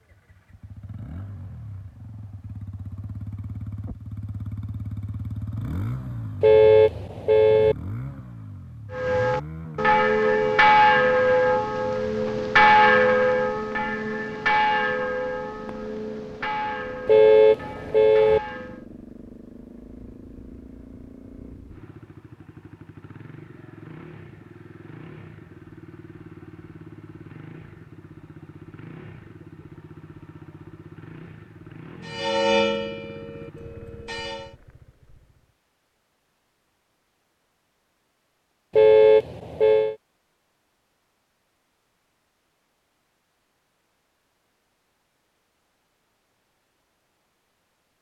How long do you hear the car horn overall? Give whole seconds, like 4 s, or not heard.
4 s.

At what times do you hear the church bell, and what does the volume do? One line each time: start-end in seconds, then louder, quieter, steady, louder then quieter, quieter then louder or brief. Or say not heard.
8.9-18.9 quieter
32.0-34.5 brief.